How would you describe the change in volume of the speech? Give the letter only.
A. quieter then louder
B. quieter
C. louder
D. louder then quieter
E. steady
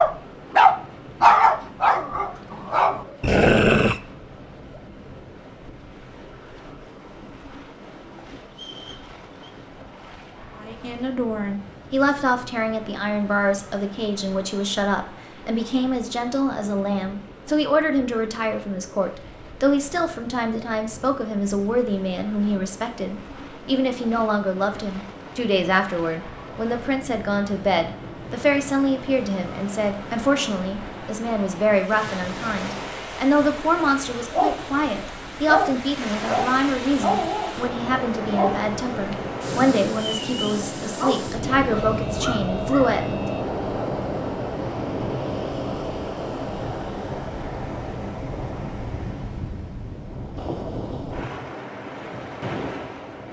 E.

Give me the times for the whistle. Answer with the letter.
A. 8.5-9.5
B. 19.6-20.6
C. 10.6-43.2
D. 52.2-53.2
A.